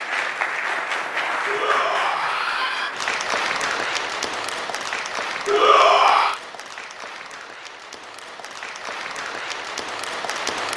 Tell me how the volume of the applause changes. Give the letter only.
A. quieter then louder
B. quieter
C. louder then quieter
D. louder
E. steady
A.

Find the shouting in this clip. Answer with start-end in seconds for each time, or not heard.
1.4-3.0, 5.5-6.4.